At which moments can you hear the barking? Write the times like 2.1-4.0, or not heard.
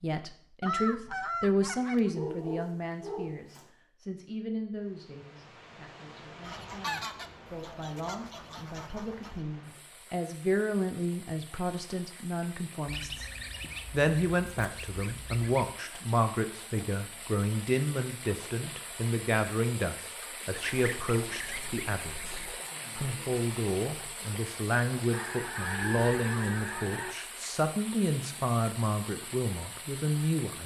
2.1-3.6.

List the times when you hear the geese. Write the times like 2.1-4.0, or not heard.
0.6-2.1, 6.5-9.4, 12.8-15.8, 20.5-22.6, 25.1-27.1.